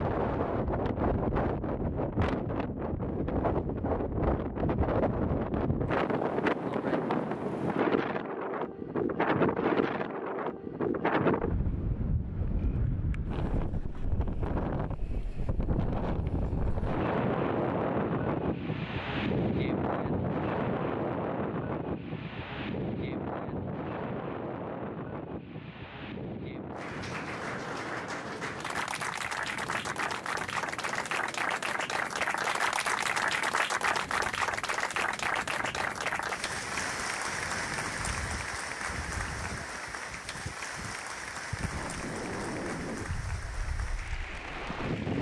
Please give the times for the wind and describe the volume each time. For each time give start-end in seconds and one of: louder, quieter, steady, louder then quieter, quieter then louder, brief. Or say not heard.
0.0-45.1 quieter.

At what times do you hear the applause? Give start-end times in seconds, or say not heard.
26.8-45.1.